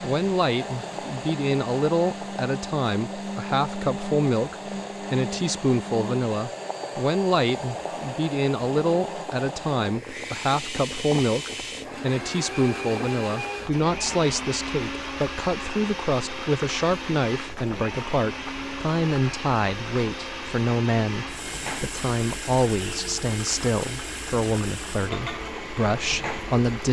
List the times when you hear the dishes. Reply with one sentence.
You can't hear the dishes here.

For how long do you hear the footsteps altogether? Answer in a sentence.
You can't hear the footsteps here.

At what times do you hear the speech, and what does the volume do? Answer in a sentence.
The speech can be heard from 0.0 to 26.8 s, at a steady volume.